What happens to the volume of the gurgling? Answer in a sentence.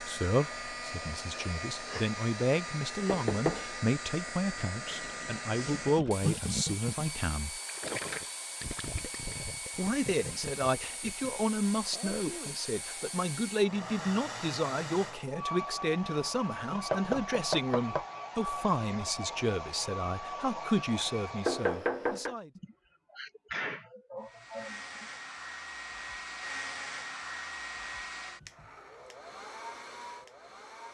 The loudness of the gurgling goes up, then down.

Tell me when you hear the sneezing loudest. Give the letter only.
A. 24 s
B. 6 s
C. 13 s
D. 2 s
A.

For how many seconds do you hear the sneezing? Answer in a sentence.
The sneezing can be heard for 4 seconds in total.